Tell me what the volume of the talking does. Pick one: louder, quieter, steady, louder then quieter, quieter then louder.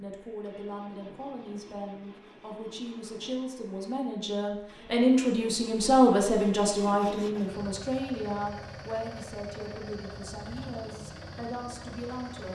louder then quieter.